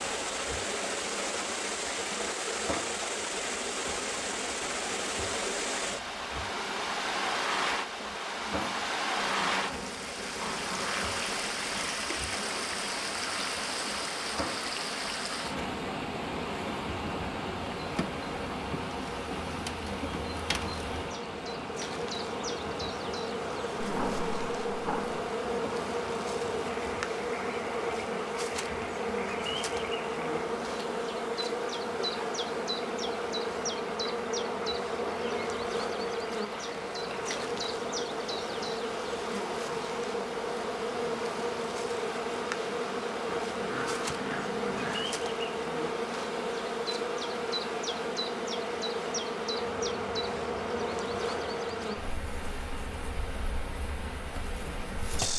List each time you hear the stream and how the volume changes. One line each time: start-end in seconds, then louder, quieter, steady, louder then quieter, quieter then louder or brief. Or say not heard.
0.0-55.3 quieter.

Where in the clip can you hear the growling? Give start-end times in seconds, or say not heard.
8.5-11.2, 23.8-25.2, 43.2-45.1.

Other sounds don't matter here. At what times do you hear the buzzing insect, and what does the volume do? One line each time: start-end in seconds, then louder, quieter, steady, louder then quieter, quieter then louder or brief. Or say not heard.
0.0-55.3 louder.